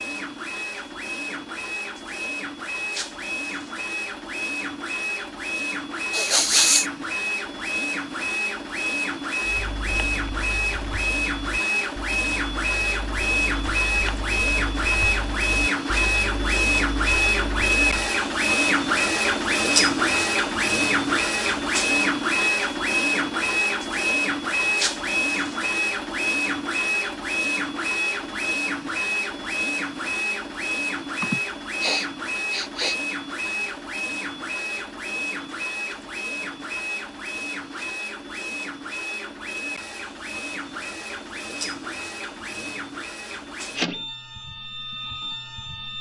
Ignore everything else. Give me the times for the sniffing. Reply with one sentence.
You can hear the sniffing from 6.1 to 6.8 s and from 31.2 to 33.0 s.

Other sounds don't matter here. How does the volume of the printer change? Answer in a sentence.
The volume of the printer goes up, then down.